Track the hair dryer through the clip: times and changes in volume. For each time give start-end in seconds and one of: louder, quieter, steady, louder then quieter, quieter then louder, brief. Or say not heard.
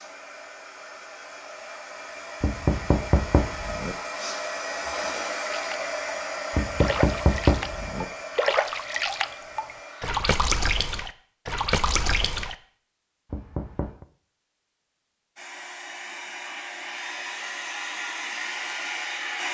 0.0-10.2 louder then quieter
15.3-19.4 louder.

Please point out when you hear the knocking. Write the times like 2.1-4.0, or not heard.
2.4-4.0, 6.5-8.1, 13.3-14.1.